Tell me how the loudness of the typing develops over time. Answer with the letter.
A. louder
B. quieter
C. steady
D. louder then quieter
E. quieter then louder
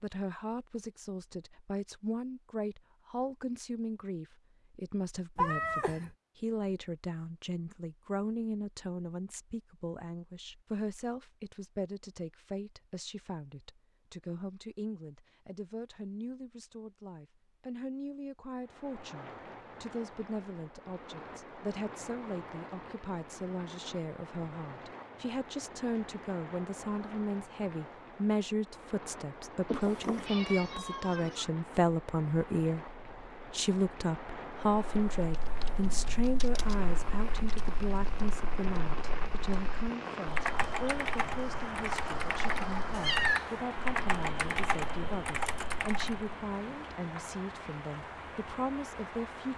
A.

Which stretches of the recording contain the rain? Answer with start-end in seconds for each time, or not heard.
18.6-49.5.